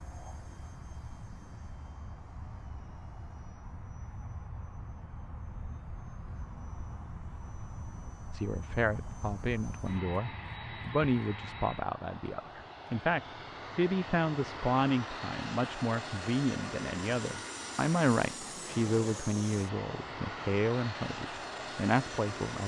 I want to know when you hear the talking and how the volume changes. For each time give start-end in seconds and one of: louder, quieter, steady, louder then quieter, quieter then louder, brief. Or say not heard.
8.3-22.6 steady.